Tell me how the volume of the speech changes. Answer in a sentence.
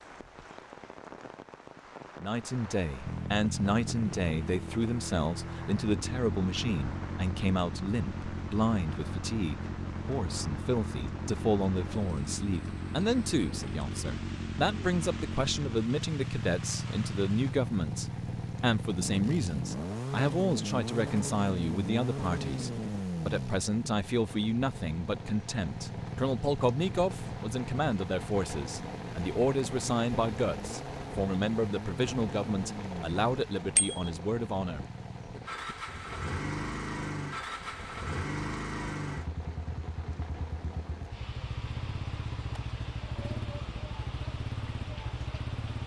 The volume of the speech stays about the same.